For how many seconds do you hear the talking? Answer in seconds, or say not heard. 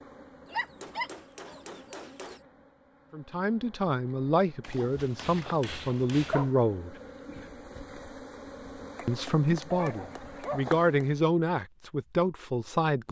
8 s.